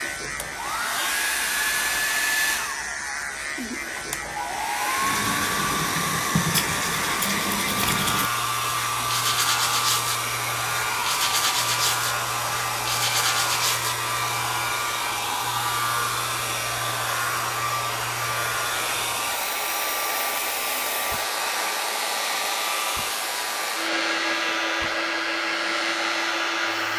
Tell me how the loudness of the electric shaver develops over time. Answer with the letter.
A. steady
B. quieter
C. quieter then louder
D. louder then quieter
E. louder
A.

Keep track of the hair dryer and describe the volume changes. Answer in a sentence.
The loudness of the hair dryer stays about the same.